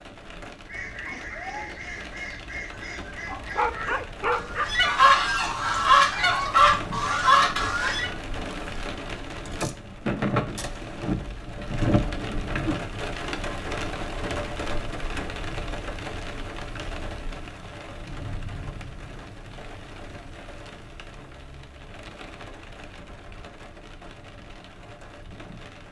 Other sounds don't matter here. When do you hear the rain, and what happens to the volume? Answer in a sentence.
You can hear the rain from 0.0 to 25.8 s, getting louder then quieter.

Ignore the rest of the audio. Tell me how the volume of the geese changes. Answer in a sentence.
The loudness of the geese goes up.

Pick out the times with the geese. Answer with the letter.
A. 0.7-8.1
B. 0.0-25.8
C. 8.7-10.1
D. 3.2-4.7
A.